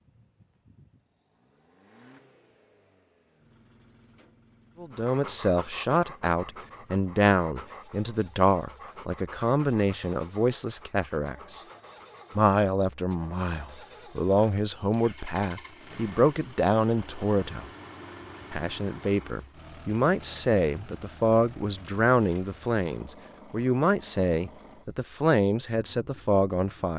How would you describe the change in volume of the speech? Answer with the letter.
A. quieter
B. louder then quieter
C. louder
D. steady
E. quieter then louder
D.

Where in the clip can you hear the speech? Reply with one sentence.
You can hear the speech from 4.8 to 11.6 s, from 12.3 to 17.7 s and from 18.5 to 26.9 s.